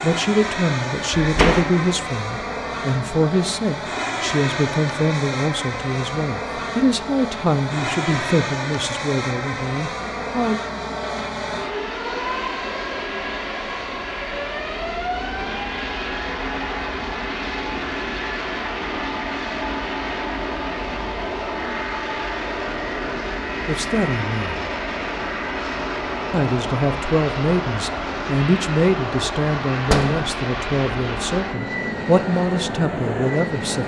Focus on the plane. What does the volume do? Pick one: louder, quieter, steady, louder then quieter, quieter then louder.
steady.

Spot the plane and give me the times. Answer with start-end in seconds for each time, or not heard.
0.0-33.8.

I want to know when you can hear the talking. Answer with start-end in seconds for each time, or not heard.
0.0-10.6, 23.6-24.6, 26.3-33.8.